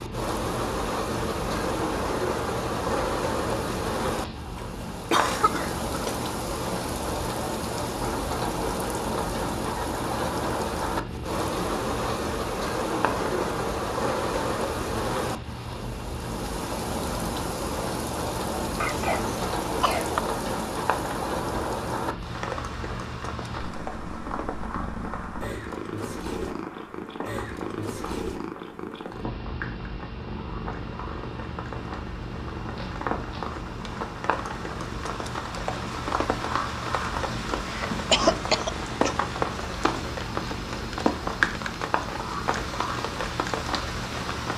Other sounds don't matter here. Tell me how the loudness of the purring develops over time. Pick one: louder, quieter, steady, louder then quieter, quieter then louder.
steady.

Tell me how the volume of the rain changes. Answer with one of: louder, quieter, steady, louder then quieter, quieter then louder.
quieter then louder.